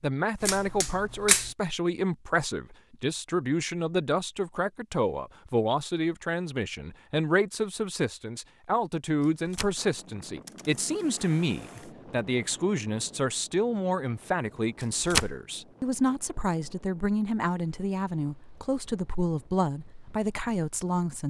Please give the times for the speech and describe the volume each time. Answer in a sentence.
You can hear the speech from 0.0 to 21.2 s, at a steady volume.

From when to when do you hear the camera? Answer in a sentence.
You can hear the camera from 0.4 to 1.6 s, from 9.2 to 9.8 s, from 10.4 to 11.9 s and from 14.8 to 15.3 s.